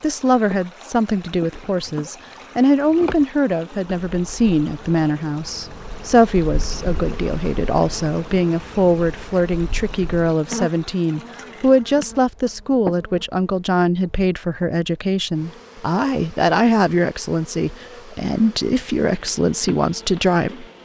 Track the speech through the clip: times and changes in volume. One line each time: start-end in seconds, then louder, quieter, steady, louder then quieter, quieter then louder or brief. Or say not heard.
0.0-20.6 steady.